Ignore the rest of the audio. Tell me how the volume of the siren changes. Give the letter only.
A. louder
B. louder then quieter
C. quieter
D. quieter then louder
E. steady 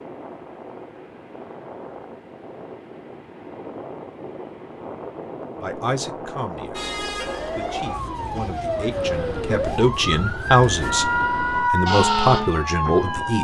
A.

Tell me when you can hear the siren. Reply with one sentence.
You can hear the siren from 6.7 to 13.3 s.